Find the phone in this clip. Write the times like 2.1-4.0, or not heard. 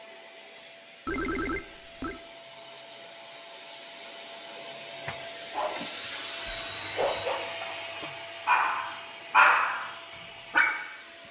1.1-2.2, 6.5-7.2.